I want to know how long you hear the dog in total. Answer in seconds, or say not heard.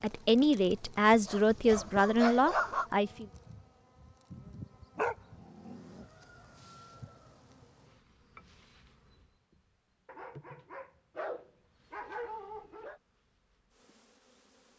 6 s.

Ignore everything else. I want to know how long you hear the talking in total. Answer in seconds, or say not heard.
3 s.